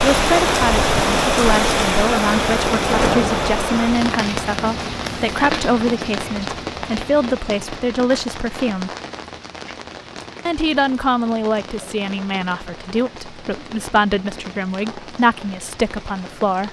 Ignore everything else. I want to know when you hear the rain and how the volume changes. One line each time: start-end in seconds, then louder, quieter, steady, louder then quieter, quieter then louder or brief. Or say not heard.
0.0-16.6 quieter.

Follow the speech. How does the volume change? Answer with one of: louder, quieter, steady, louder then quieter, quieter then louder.
steady.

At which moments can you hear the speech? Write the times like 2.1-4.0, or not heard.
0.0-8.9, 10.4-16.6.